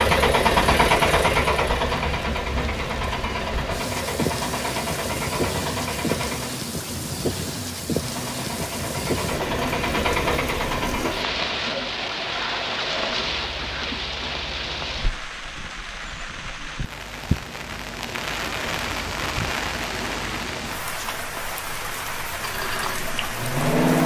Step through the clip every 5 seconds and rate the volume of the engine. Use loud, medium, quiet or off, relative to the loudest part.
loud, medium, medium, off, loud.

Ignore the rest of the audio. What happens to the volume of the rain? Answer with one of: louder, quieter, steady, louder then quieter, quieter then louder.
steady.